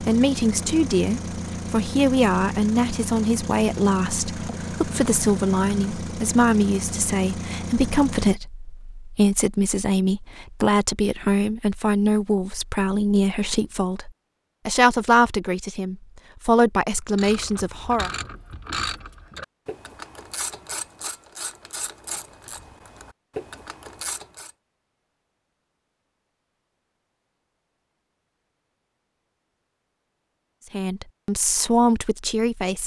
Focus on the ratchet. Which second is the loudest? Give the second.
19 s.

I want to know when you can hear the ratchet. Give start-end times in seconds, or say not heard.
17.1-24.5.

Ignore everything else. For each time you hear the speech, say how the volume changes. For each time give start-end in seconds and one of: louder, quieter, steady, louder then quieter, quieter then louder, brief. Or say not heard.
0.0-18.1 steady
30.7-32.8 brief.